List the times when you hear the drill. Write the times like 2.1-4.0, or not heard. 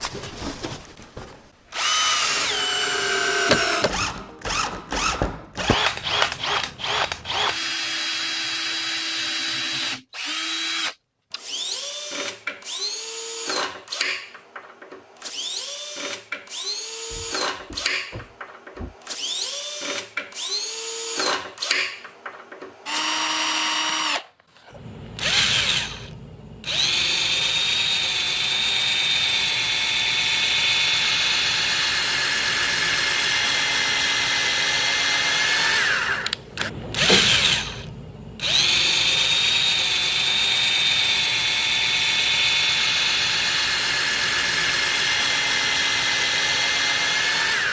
0.0-47.6.